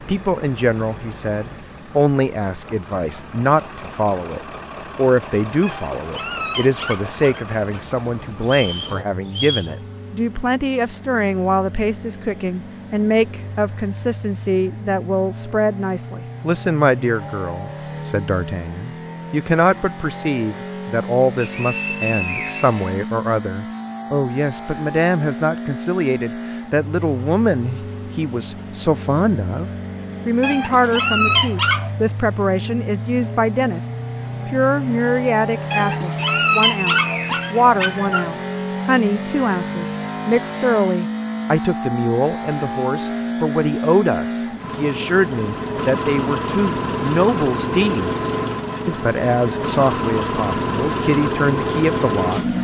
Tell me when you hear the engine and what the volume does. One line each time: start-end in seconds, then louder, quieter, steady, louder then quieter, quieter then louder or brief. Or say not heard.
0.0-52.6 louder.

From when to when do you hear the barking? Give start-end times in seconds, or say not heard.
5.6-7.6, 30.4-31.9, 35.7-38.4.